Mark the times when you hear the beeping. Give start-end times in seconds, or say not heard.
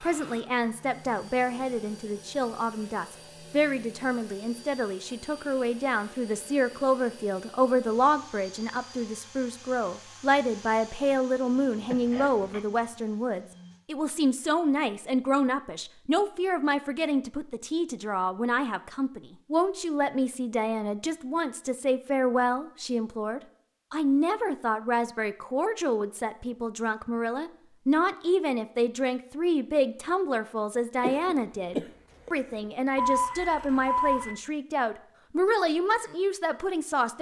33.0-34.4.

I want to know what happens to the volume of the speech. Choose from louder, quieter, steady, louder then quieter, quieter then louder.
steady.